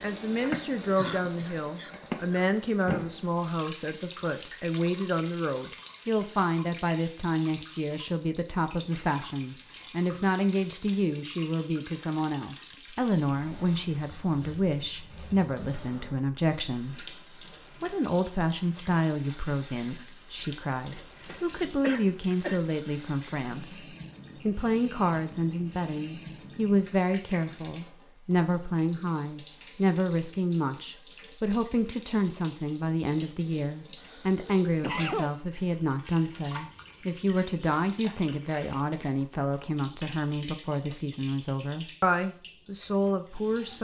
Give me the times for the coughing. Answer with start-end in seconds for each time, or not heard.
0.9-2.5, 20.9-22.6, 34.0-35.3.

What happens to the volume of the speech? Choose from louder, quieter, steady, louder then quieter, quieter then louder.
steady.